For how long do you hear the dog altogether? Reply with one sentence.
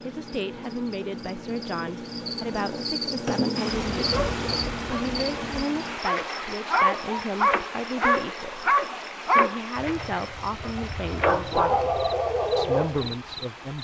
The dog can be heard for 9 seconds in total.